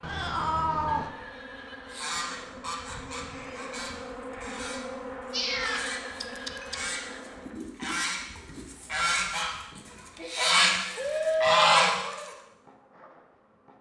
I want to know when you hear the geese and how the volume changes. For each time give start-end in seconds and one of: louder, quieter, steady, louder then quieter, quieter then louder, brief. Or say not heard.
1.9-12.3 louder.